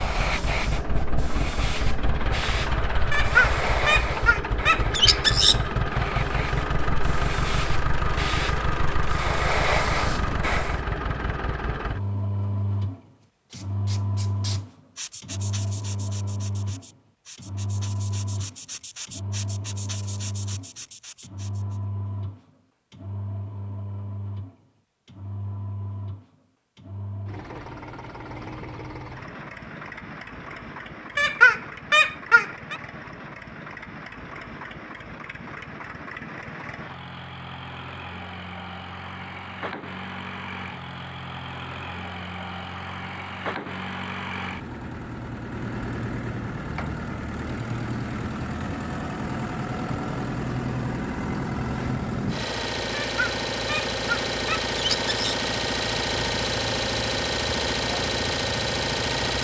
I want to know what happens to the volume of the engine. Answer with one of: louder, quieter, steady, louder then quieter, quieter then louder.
quieter then louder.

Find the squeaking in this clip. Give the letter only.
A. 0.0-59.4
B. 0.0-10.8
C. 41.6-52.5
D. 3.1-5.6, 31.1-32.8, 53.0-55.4
D.